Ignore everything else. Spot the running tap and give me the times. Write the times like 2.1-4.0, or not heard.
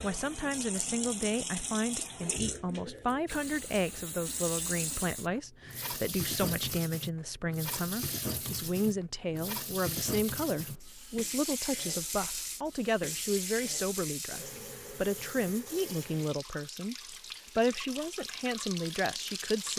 0.0-19.7.